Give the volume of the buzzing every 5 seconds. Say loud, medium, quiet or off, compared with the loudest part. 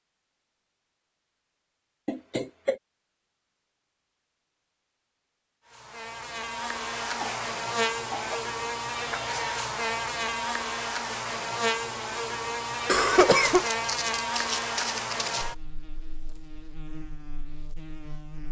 off, loud, loud, medium.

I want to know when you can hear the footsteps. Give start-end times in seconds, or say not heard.
13.4-15.4.